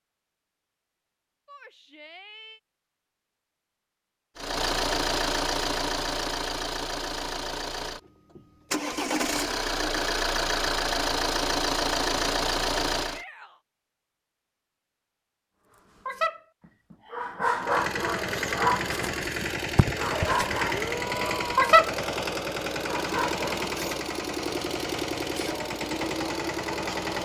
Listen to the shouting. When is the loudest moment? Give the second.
21 s.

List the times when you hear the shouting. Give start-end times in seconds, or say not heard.
1.4-2.6, 13.0-13.6, 20.6-21.6.